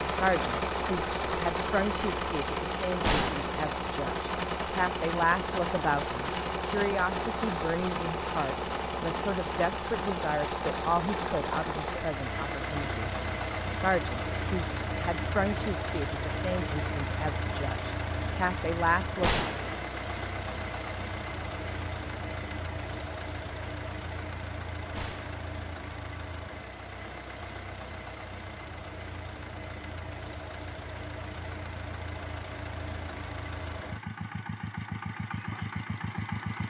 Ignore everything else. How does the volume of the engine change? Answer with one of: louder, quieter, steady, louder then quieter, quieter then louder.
quieter.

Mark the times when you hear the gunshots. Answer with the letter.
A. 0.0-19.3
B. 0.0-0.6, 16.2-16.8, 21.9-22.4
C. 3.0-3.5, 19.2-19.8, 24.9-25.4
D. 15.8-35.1
C.